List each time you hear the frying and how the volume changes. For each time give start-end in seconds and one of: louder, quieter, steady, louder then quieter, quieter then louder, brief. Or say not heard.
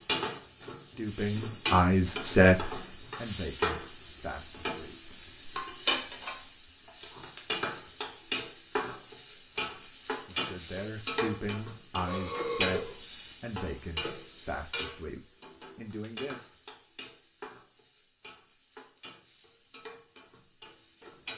0.0-21.3 quieter.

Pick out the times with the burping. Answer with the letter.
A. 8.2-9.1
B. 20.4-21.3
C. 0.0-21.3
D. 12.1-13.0
D.